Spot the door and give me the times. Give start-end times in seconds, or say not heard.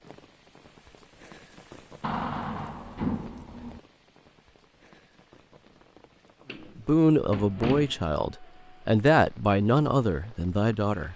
2.0-3.8, 6.5-8.1.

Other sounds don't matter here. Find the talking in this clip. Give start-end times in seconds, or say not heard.
6.8-11.1.